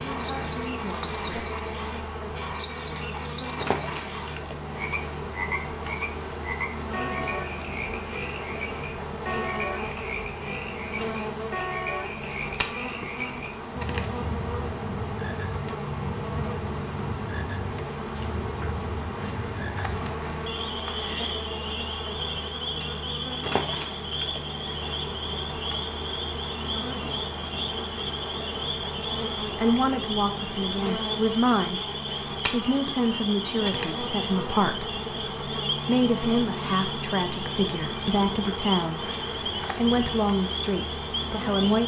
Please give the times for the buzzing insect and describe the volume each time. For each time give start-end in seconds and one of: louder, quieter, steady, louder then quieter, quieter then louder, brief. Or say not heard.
0.0-41.8 steady.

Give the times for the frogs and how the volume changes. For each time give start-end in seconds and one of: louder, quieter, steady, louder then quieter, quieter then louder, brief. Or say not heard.
0.0-41.8 steady.